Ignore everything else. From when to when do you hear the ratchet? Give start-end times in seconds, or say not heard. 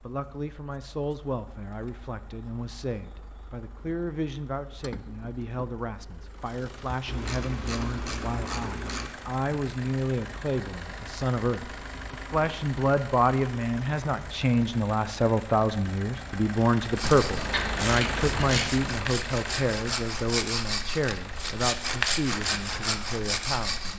7.0-9.1, 17.0-18.7.